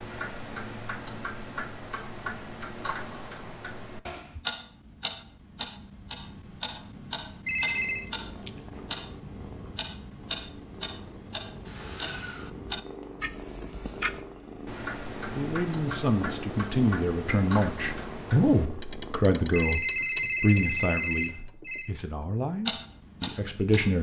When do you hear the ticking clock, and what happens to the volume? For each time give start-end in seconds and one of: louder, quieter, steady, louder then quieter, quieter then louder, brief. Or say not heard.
0.0-23.9 steady.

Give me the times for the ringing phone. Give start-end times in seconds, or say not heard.
7.5-8.1, 19.5-21.9.